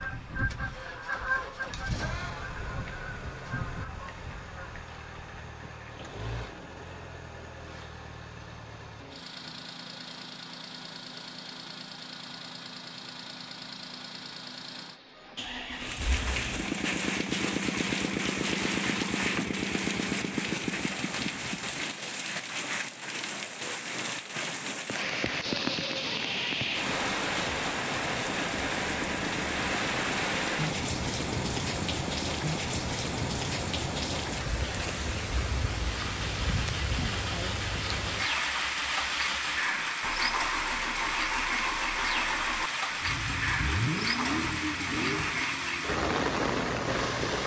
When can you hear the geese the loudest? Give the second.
1 s.